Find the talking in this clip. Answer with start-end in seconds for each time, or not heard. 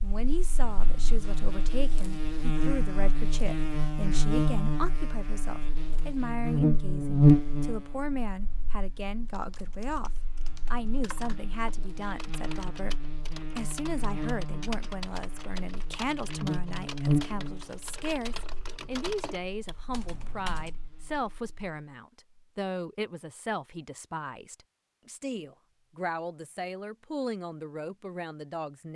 0.0-10.1, 10.7-28.9.